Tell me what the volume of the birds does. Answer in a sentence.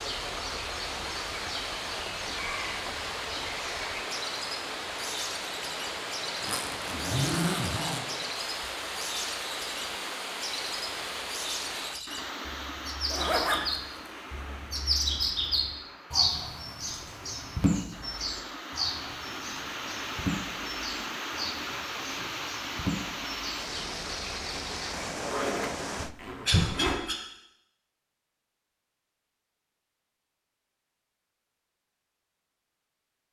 The volume of the birds goes up, then down.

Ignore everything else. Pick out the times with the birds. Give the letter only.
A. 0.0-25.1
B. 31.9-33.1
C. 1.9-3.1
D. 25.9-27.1
A.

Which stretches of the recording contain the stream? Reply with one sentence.
You can hear the stream from 0.0 to 26.1 s.